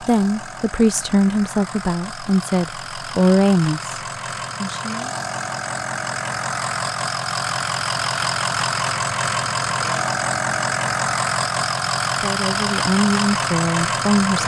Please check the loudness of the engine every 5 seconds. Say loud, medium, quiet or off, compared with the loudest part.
medium, loud, loud.